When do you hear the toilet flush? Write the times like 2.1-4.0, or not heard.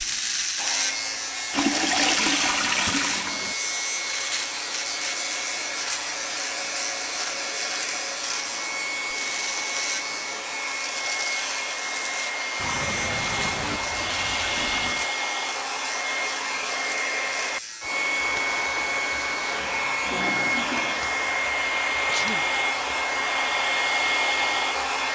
1.5-3.5, 12.6-15.1, 19.6-21.1.